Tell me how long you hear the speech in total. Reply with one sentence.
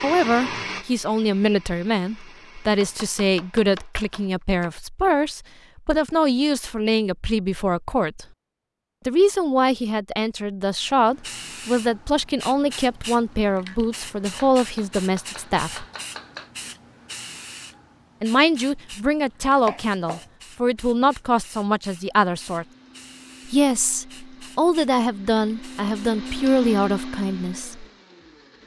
The speech can be heard for 24 seconds in total.